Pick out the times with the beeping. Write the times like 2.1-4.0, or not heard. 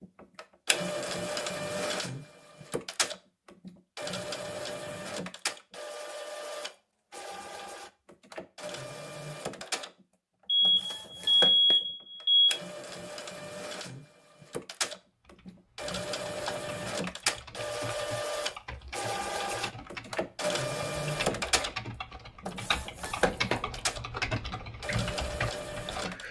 10.4-12.5.